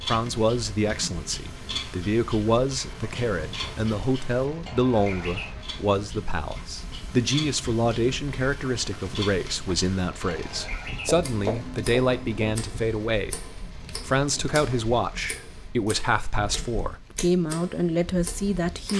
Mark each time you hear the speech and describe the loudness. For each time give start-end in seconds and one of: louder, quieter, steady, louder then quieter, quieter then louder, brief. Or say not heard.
0.0-18.9 steady.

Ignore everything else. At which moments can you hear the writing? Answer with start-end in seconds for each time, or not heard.
11.1-12.4.